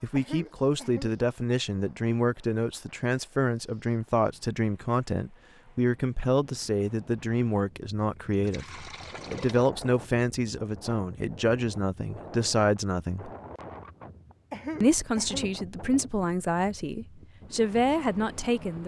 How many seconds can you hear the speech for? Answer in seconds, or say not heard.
17 s.